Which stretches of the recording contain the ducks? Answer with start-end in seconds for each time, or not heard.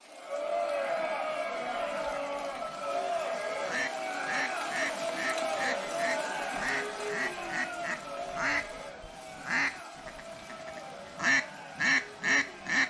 1.6-12.8.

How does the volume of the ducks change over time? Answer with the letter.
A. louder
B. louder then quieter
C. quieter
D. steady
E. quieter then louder
A.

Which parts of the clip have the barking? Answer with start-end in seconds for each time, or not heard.
not heard.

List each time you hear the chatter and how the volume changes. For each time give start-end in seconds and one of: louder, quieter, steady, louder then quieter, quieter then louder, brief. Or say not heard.
0.0-12.8 quieter.